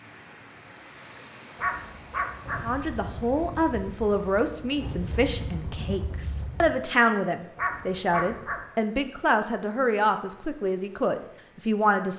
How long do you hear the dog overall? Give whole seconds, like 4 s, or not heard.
2 s.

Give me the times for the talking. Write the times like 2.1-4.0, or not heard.
2.6-12.1.